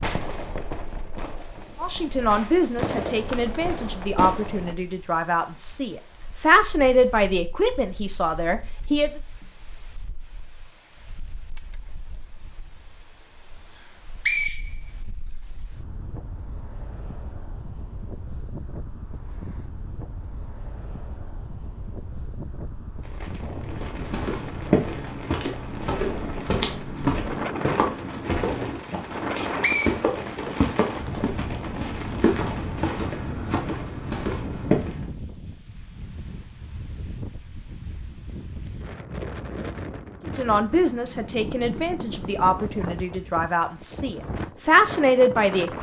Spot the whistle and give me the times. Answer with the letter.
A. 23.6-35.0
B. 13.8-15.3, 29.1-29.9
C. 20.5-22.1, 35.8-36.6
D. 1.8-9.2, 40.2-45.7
B.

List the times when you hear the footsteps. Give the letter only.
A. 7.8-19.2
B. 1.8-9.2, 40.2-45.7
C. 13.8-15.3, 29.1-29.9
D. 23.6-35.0
D.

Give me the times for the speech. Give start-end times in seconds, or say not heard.
1.8-9.2, 40.2-45.7.